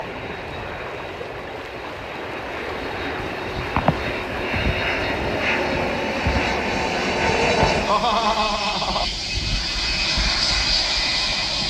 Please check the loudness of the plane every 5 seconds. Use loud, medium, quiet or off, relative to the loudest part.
medium, loud, loud.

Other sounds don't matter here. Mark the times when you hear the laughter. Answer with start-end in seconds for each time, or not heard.
7.8-9.1.